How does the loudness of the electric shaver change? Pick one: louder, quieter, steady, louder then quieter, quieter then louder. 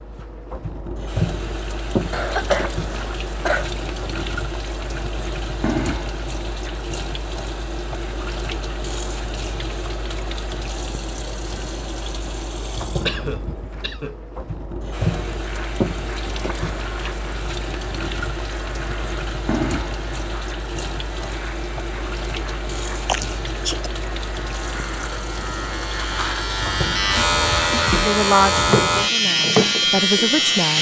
louder.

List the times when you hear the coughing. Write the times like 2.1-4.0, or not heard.
2.1-3.9, 13.1-14.2, 23.1-23.9.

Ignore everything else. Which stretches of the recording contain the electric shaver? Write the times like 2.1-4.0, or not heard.
14.9-30.7.